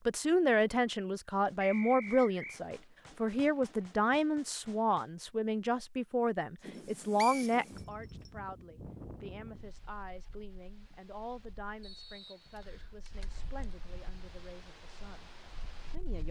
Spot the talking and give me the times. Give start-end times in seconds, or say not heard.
0.1-16.2.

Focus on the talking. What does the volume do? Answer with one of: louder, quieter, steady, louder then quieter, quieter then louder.
quieter.